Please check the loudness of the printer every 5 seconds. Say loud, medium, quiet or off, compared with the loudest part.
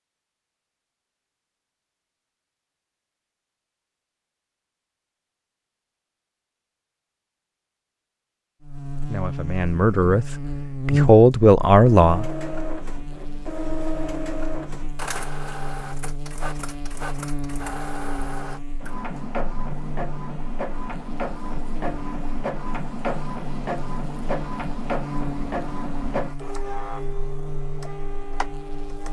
off, off, loud, loud, loud, loud.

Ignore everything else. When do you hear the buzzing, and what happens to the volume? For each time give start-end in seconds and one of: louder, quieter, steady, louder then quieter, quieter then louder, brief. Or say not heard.
8.6-29.0 quieter.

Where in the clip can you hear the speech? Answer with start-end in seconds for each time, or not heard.
9.0-12.2.